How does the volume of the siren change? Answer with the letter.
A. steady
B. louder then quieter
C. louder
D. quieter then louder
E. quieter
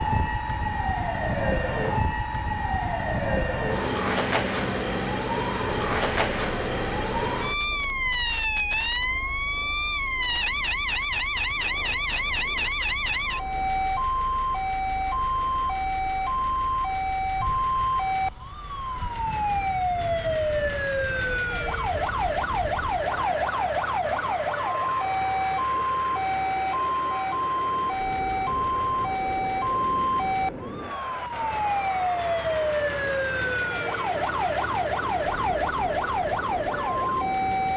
A.